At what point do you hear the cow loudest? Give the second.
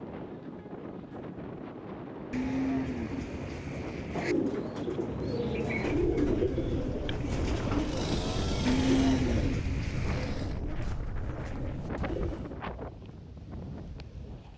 9 s.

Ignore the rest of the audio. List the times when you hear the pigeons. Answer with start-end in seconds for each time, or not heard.
4.1-12.6.